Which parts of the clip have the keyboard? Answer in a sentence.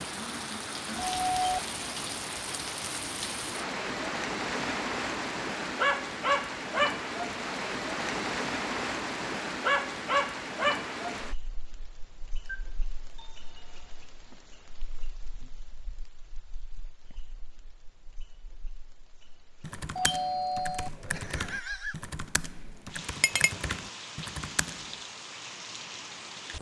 The keyboard can be heard from 19.6 to 24.9 s.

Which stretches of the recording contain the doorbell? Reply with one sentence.
The doorbell can be heard from 0.9 to 1.6 s, from 12.4 to 13.9 s and from 19.9 to 21.9 s.